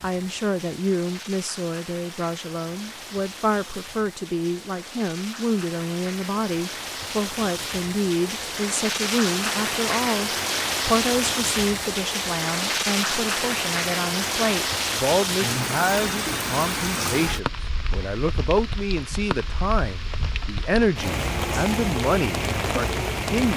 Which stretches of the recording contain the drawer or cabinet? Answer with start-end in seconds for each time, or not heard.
not heard.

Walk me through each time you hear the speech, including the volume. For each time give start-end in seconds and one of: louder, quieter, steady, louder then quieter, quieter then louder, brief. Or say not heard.
0.0-23.5 steady.